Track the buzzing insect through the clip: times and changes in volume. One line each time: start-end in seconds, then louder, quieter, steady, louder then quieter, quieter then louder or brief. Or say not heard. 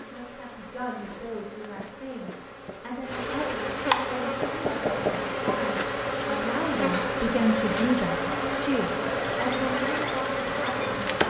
0.0-11.2 louder.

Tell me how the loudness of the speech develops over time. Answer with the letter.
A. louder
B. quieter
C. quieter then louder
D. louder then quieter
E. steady
D.